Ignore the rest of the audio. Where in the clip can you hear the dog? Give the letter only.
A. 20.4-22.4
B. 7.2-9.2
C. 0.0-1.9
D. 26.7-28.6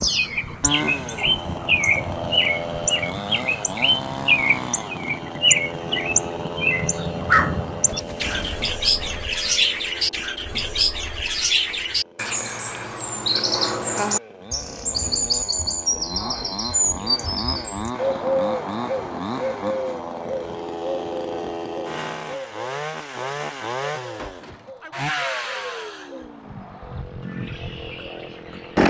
B.